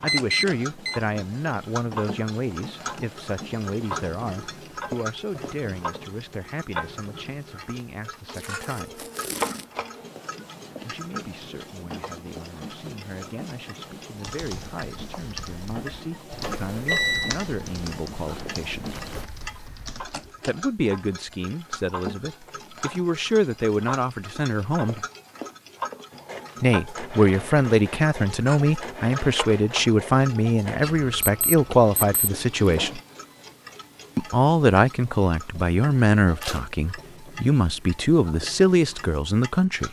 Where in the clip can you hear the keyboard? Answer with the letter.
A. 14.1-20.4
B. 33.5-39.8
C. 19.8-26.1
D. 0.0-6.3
A.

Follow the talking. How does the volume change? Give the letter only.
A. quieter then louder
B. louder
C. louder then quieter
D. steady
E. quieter
A.